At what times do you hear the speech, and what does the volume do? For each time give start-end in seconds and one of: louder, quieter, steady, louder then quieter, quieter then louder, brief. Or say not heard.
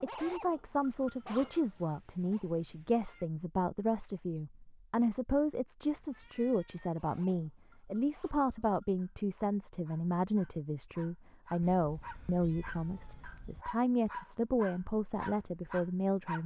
0.0-16.4 steady.